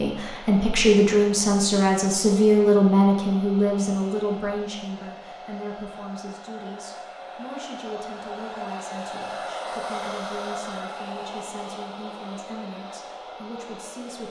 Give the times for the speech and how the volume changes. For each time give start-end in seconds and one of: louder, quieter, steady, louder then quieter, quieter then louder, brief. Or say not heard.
0.0-14.2 quieter.